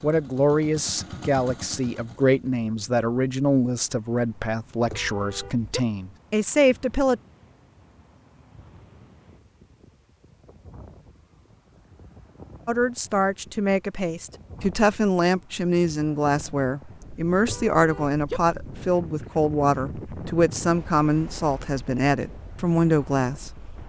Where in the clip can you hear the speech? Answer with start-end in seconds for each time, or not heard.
0.0-7.2, 12.7-23.7.